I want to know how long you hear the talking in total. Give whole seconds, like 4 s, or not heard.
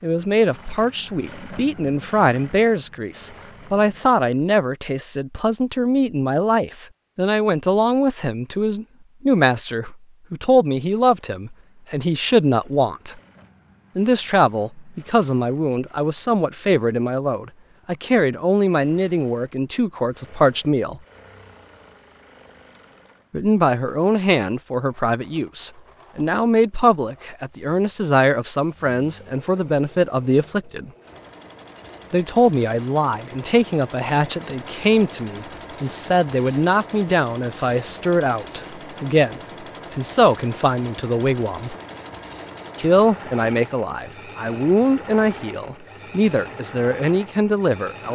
43 s.